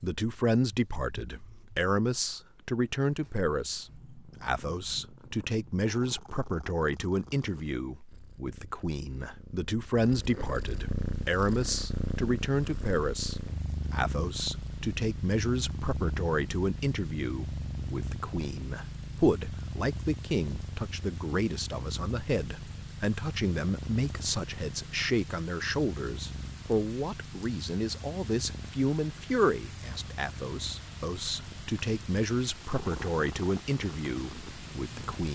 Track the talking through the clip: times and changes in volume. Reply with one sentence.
The talking can be heard from 0.0 to 35.2 s, at a steady volume.